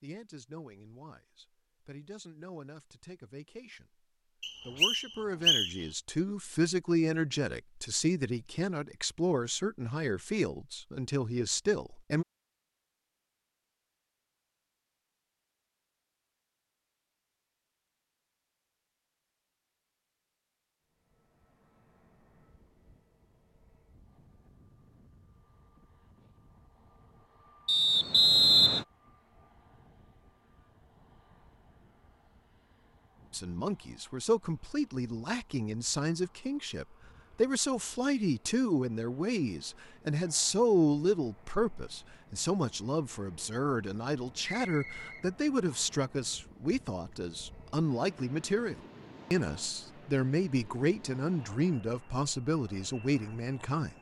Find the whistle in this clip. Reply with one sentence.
You can hear the whistle from 4.4 to 5.8 s, from 27.6 to 28.9 s and from 44.5 to 46.0 s.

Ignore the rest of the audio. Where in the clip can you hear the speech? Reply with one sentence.
The speech can be heard from 0.0 to 4.0 s, from 4.7 to 12.2 s and from 33.3 to 53.9 s.